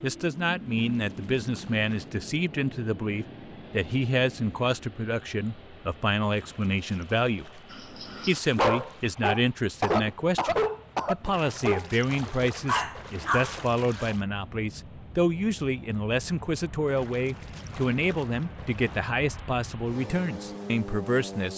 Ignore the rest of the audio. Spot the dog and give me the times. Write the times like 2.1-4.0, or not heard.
7.7-14.1.